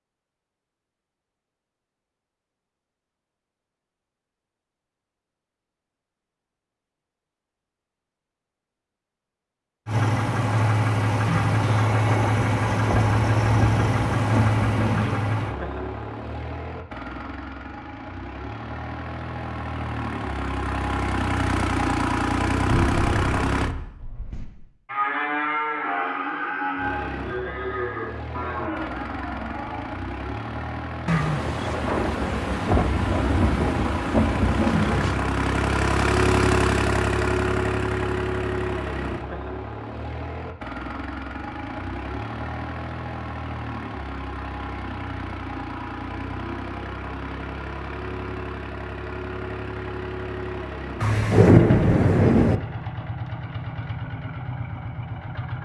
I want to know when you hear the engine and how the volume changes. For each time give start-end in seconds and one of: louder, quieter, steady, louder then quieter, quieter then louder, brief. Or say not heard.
9.8-23.8 quieter then louder
26.8-55.6 louder then quieter.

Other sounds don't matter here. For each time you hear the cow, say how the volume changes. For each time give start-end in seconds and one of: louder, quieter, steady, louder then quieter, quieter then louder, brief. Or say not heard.
22.6-29.9 louder then quieter.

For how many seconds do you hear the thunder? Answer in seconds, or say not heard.
10 s.